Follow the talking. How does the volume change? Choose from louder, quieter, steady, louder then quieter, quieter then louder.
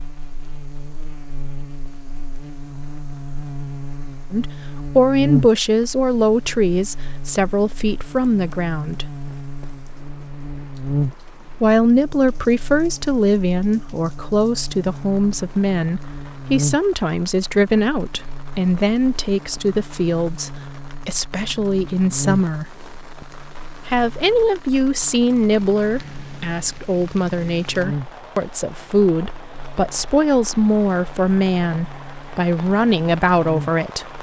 steady.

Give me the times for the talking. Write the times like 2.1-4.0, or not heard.
4.3-9.1, 11.6-22.8, 23.9-34.1.